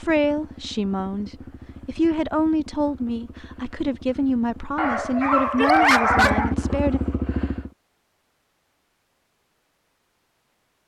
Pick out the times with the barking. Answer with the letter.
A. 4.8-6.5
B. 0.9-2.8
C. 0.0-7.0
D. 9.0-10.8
A.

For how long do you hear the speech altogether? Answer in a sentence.
You can hear the speech for 7 seconds altogether.